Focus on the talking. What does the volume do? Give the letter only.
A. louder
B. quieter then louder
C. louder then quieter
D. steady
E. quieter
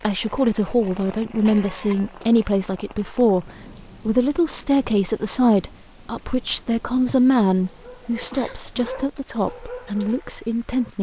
E.